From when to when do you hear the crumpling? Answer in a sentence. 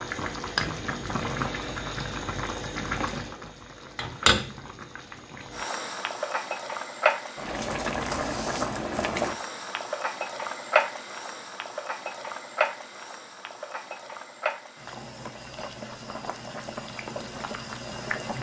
You can hear the crumpling from 7.7 to 9.3 s.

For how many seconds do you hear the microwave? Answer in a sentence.
The microwave can't be heard in this clip.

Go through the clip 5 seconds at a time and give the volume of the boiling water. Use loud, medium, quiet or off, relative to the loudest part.
loud, loud, loud, medium.